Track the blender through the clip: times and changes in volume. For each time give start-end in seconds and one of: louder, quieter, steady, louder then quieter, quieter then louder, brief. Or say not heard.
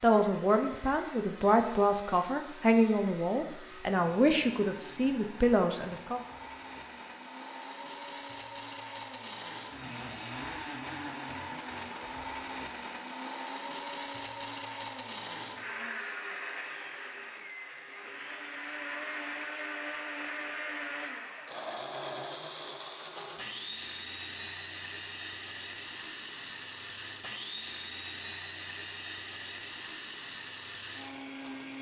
0.0-31.7 louder.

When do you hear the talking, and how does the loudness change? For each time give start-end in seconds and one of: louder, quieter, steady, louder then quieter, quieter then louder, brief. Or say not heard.
0.0-6.2 steady.